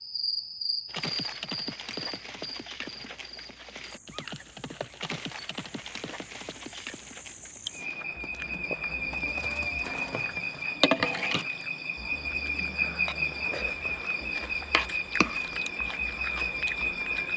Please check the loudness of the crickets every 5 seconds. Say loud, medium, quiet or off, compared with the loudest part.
medium, medium, loud, loud.